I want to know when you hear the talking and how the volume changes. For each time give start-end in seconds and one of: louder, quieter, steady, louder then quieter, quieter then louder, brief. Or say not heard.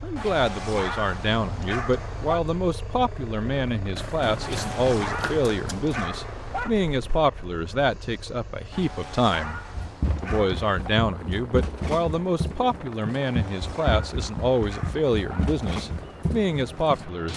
0.0-9.6 steady
10.2-17.3 steady.